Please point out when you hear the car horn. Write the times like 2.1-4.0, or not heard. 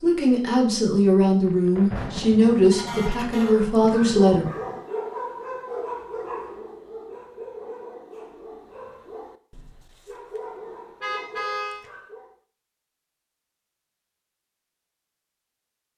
2.7-3.6, 11.0-11.8.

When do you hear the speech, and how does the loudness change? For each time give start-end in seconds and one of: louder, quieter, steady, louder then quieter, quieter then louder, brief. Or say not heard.
0.0-4.5 steady.